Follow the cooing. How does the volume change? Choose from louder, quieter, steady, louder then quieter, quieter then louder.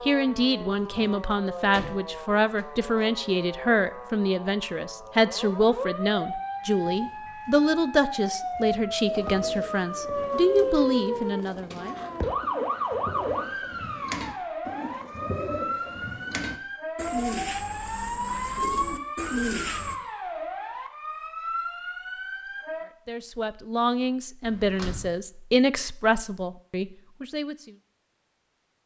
louder.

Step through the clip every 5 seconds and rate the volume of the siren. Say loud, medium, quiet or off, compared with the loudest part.
medium, loud, loud, loud, medium, off.